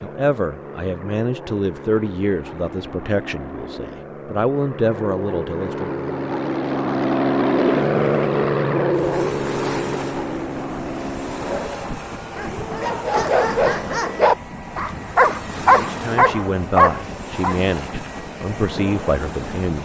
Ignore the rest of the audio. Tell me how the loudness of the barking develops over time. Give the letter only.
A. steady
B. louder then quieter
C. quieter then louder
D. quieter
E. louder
E.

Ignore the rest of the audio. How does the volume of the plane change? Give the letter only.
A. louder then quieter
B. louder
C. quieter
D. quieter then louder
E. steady
A.